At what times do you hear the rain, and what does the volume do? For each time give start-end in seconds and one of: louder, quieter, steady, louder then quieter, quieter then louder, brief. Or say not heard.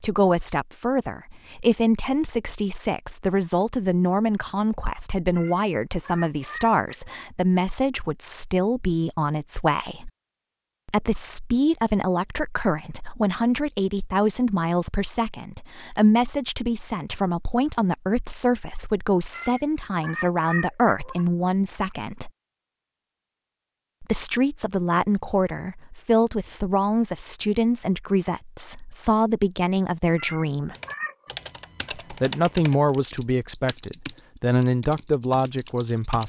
not heard.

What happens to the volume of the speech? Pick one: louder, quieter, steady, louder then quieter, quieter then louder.
steady.